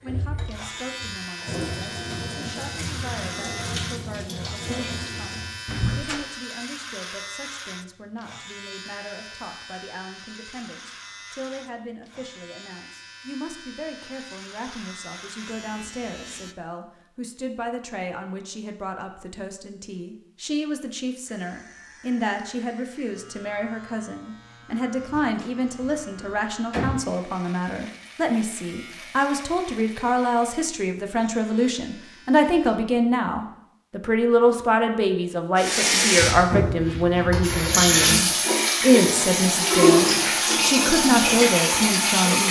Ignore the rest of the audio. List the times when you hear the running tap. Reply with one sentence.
The running tap can be heard from 0.0 to 5.7 s and from 35.5 to 42.4 s.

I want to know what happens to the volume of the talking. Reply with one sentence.
The volume of the talking goes up.